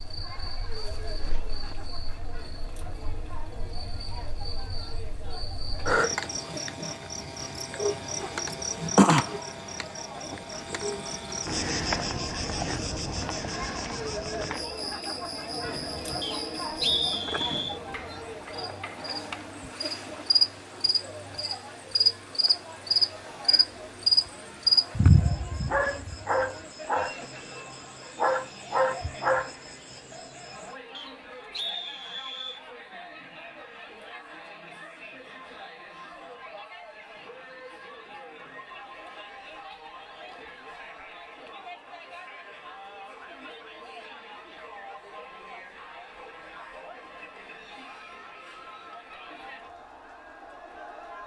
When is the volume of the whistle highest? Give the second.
17 s.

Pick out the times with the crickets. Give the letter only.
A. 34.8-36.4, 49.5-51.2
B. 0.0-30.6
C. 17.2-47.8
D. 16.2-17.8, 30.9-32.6
B.